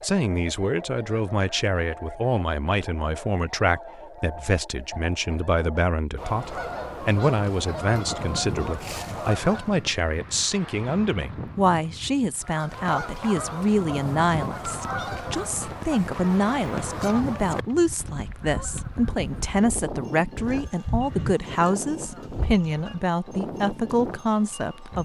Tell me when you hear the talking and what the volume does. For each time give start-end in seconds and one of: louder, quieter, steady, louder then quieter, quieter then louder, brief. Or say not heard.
0.0-24.9 steady.